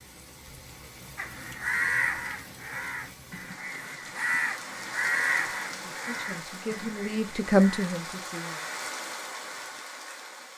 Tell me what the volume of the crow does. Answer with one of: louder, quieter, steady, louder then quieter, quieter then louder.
quieter.